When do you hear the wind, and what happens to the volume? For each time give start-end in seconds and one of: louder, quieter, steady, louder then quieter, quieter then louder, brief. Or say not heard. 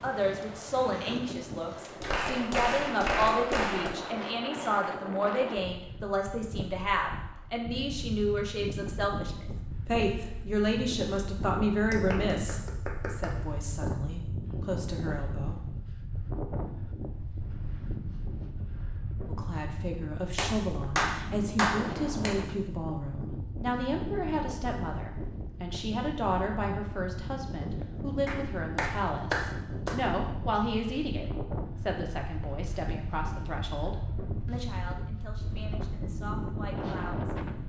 0.0-37.6 steady.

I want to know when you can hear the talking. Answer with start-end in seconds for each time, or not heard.
0.0-15.6, 19.2-37.4.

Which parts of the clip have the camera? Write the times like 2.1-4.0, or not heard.
not heard.